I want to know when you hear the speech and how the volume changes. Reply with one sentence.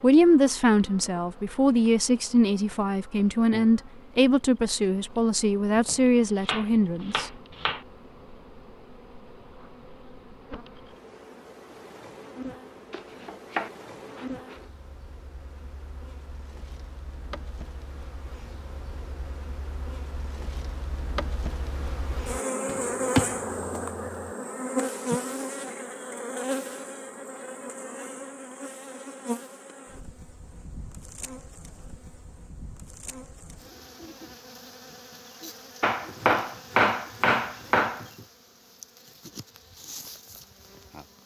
The speech can be heard from 0.0 to 7.3 s, at a steady volume.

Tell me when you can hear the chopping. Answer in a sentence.
The chopping can be heard from 5.8 to 7.8 s, from 12.9 to 14.6 s, from 22.6 to 24.1 s and from 35.8 to 38.0 s.